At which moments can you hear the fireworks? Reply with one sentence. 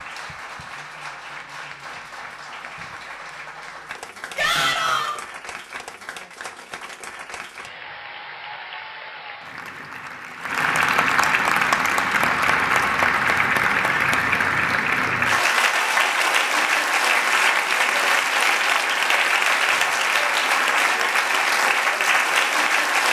You can't hear the fireworks here.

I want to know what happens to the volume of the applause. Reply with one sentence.
The volume of the applause goes up.